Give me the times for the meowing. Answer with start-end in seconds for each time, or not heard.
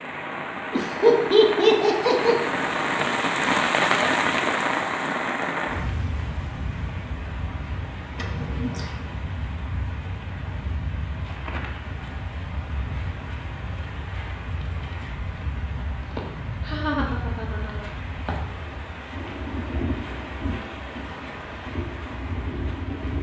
not heard.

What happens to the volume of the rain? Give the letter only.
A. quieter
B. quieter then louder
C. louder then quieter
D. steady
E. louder
A.